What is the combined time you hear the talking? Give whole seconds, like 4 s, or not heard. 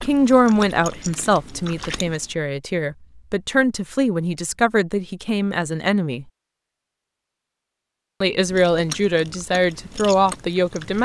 9 s.